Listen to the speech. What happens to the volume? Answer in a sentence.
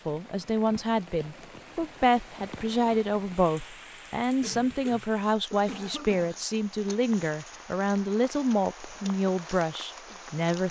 The loudness of the speech stays about the same.